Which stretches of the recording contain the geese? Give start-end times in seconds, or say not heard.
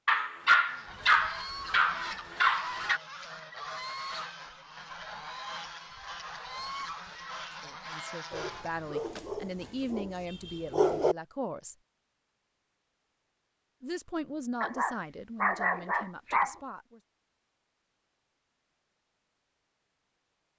0.5-9.1.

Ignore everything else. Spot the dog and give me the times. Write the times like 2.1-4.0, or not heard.
0.1-3.0, 8.3-11.2, 14.6-16.6.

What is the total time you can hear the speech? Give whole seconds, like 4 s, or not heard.
7 s.